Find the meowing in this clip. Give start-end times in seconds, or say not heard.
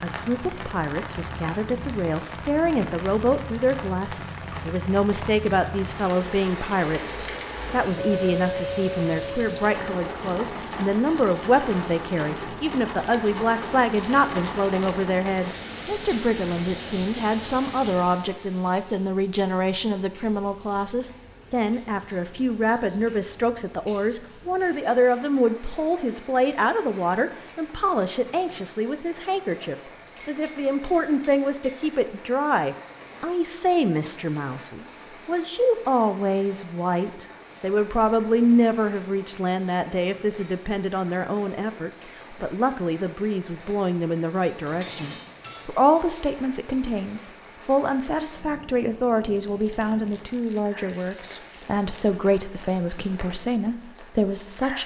not heard.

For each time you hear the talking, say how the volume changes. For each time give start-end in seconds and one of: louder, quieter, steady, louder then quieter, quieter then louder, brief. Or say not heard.
0.0-54.8 steady.